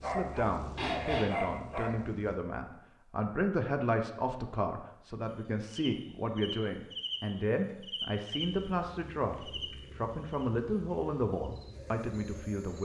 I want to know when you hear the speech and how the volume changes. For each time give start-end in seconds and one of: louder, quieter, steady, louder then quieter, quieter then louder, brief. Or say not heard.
0.0-12.8 steady.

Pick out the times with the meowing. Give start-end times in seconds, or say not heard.
0.8-1.5.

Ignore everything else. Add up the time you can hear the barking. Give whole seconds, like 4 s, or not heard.
2 s.